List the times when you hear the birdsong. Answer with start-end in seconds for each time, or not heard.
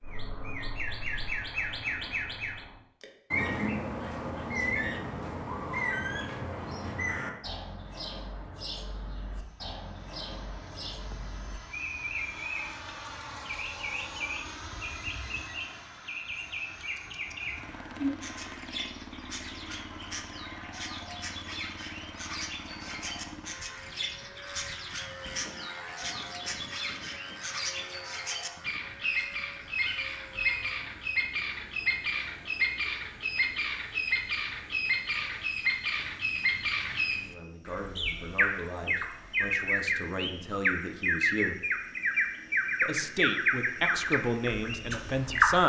0.0-45.6.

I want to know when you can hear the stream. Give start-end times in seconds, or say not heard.
not heard.